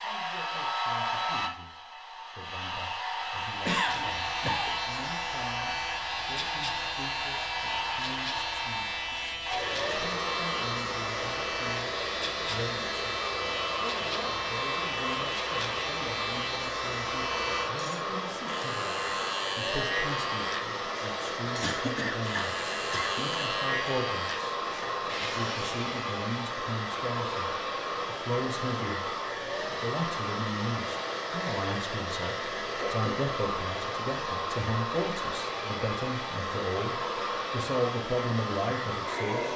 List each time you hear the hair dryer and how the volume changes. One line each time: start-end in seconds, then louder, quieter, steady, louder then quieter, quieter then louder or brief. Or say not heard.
0.0-39.5 steady.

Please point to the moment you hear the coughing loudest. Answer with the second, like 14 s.
4 s.